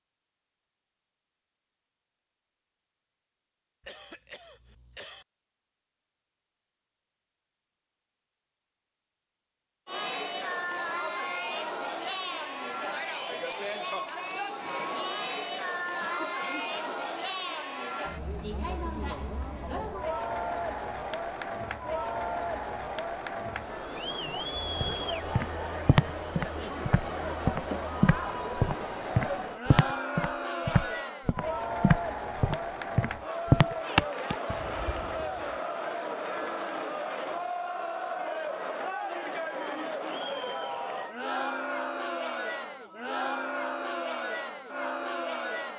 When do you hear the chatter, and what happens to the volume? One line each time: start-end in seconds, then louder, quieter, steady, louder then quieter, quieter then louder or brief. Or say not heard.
9.8-45.7 steady.